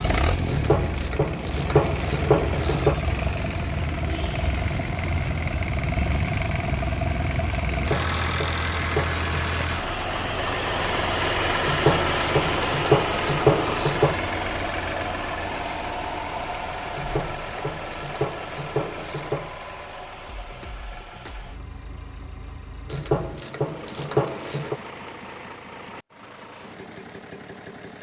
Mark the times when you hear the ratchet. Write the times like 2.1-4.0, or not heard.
0.5-3.0, 7.7-9.2, 11.6-14.2, 16.9-19.6, 22.9-24.8.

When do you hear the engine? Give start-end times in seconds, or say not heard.
0.0-27.9.